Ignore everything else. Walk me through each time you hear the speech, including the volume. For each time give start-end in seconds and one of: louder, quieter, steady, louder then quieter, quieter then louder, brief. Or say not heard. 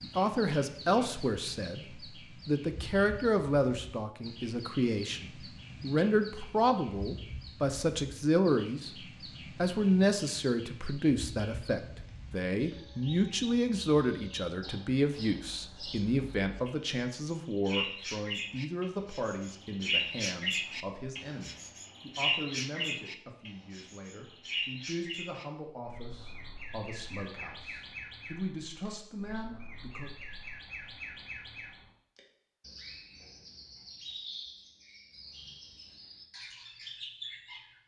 0.0-30.1 quieter.